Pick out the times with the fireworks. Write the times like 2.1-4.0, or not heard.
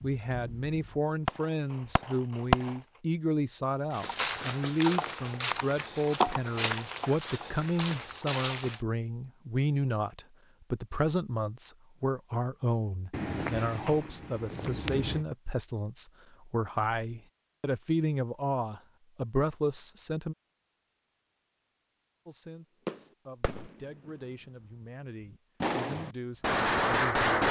0.0-2.8, 22.9-24.1, 25.6-27.4.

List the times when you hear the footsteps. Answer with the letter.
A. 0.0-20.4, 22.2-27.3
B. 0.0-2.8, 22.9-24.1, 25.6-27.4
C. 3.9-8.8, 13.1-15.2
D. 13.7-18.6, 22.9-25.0
C.